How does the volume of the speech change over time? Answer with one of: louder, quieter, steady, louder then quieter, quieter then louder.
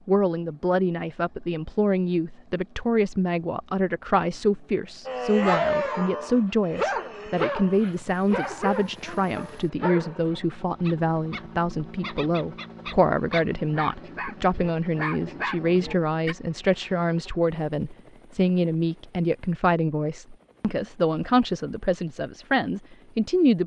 steady.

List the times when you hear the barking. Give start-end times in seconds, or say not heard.
5.0-16.4.